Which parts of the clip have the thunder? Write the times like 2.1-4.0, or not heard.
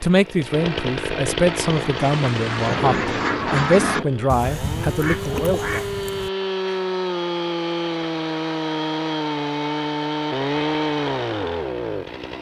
2.0-4.0.